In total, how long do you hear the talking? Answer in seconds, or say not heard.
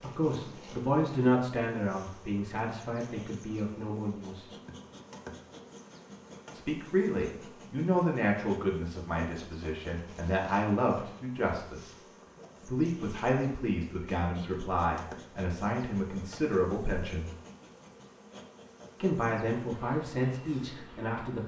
17 s.